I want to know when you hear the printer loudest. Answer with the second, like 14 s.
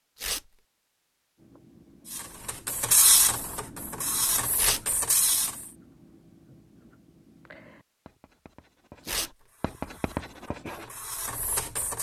3 s.